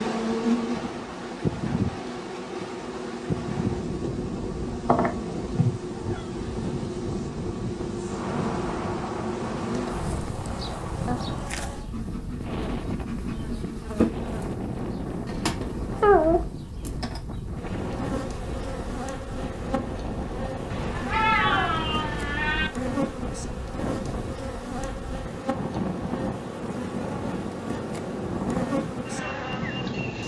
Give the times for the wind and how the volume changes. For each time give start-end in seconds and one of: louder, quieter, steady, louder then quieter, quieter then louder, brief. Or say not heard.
0.0-30.2 steady.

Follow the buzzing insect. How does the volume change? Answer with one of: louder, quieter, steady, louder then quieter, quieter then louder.
steady.